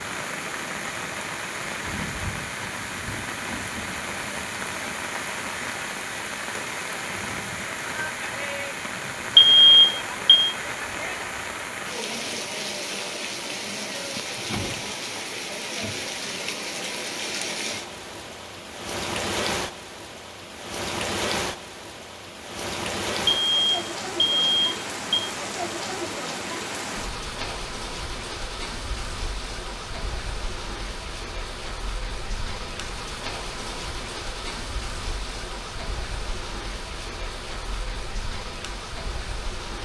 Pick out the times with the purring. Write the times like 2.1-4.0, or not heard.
not heard.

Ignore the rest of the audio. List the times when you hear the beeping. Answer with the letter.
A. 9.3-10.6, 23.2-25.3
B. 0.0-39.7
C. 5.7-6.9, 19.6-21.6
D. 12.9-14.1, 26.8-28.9
A.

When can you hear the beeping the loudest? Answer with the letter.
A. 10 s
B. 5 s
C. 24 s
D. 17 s
A.